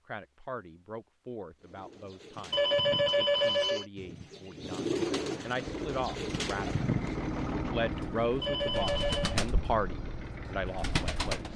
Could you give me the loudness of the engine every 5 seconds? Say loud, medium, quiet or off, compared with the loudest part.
off, loud, medium.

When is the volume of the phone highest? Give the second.
3 s.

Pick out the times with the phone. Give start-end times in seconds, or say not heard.
2.5-3.9, 8.4-9.4.